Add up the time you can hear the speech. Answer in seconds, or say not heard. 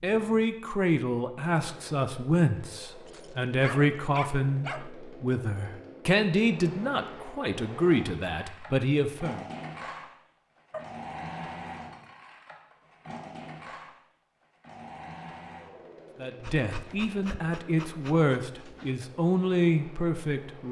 14 s.